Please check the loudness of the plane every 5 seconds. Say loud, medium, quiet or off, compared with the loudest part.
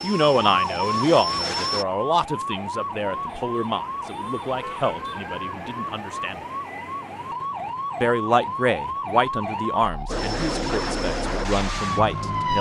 loud, off, loud.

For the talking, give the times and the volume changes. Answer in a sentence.
You can hear the talking from 0.0 to 6.4 s, getting quieter; and from 8.0 to 12.5 s, getting quieter then louder.